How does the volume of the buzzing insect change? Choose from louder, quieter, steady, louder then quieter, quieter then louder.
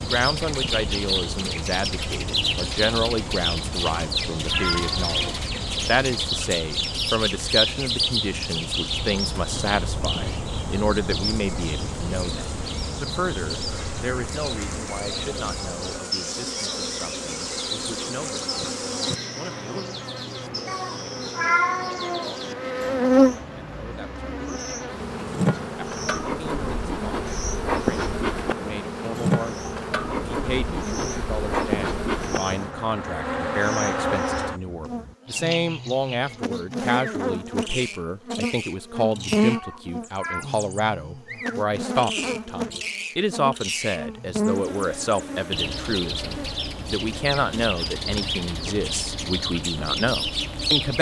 louder then quieter.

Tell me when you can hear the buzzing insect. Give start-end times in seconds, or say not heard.
0.0-50.9.